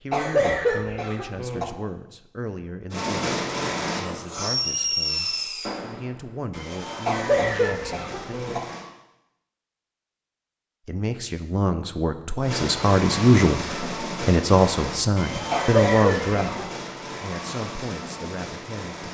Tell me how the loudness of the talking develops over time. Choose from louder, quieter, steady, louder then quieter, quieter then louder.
louder then quieter.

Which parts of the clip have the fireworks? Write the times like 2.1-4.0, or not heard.
2.9-8.8, 12.4-19.1.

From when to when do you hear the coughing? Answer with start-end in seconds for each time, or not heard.
0.1-1.6, 7.0-8.6, 15.5-16.6.